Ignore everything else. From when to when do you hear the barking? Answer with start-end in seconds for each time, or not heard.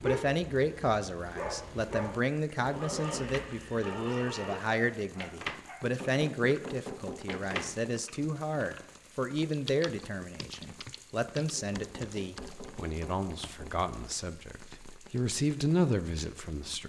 0.0-5.8.